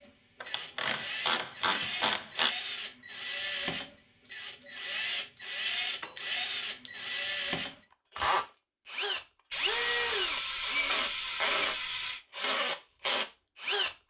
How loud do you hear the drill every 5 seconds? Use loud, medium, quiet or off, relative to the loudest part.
medium, loud, loud.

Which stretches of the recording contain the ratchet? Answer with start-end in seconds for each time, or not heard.
0.4-2.5, 5.7-6.9, 9.5-12.2.